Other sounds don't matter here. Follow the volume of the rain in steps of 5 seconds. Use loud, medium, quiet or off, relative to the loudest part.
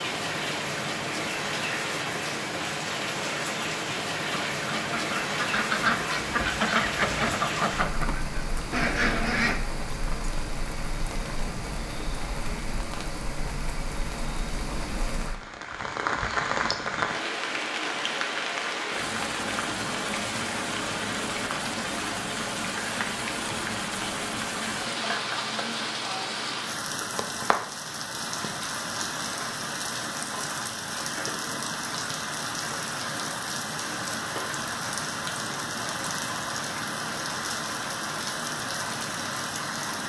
loud, loud, medium, loud, loud, loud, loud, loud.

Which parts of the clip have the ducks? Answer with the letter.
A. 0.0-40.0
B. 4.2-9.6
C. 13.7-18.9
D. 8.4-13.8
B.